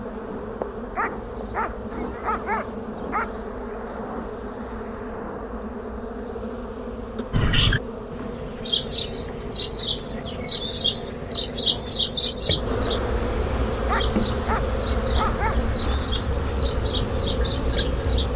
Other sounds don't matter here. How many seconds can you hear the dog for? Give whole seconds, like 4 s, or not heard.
4 s.